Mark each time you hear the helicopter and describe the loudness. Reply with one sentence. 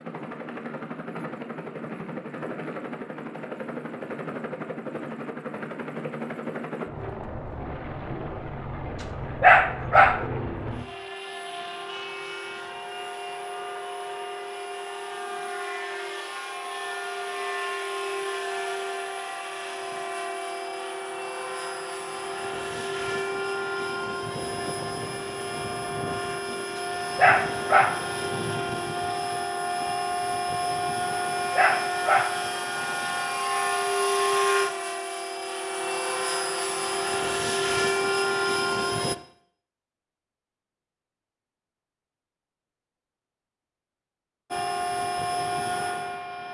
The helicopter can be heard from 0.0 to 39.1 s, getting louder; and briefly from 44.5 to 46.4 s.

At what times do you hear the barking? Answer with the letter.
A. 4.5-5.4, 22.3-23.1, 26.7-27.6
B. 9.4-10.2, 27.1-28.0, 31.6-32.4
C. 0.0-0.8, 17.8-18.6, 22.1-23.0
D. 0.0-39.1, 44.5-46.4
B.